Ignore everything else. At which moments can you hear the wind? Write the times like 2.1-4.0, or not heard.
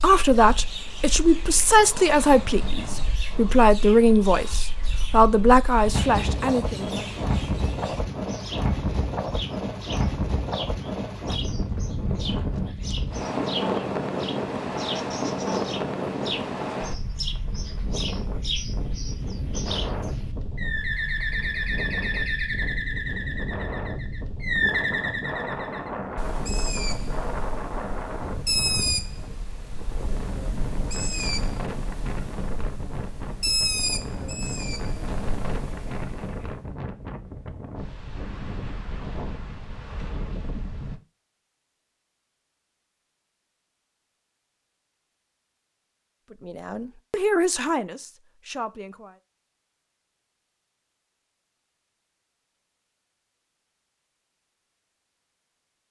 0.0-41.0.